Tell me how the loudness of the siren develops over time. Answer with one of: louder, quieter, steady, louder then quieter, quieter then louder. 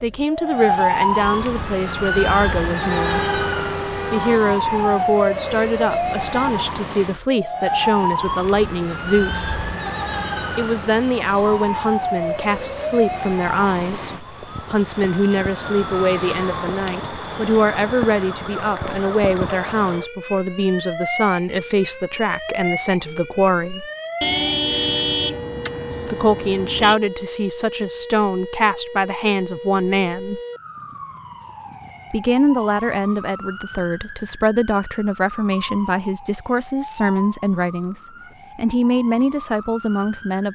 quieter.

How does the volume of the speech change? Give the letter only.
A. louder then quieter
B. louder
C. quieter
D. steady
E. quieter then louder
D.